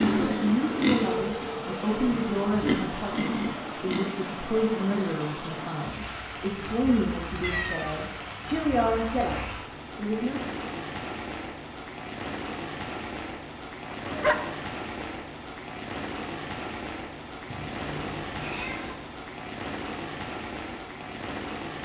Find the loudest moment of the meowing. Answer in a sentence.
The loudest moment of the meowing is at 8 seconds.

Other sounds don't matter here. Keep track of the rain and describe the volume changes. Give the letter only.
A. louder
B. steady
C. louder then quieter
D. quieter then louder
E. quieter
B.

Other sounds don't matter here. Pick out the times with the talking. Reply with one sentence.
You can hear the talking from 0.2 to 10.6 s.